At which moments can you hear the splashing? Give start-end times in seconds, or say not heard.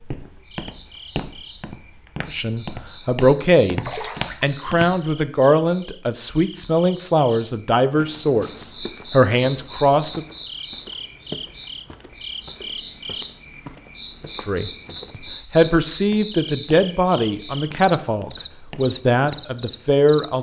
3.9-4.8.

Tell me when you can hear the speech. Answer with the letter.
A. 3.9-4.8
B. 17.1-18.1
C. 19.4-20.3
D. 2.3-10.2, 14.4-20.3
D.